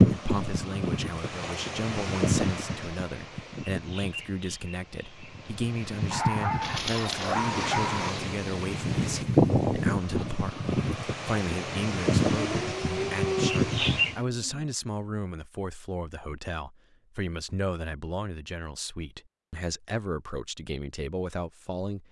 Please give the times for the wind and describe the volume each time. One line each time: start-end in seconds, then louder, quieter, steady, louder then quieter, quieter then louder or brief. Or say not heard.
0.0-14.2 quieter then louder.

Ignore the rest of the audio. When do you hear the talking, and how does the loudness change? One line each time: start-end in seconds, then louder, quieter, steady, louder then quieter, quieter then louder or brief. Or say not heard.
0.1-22.0 steady.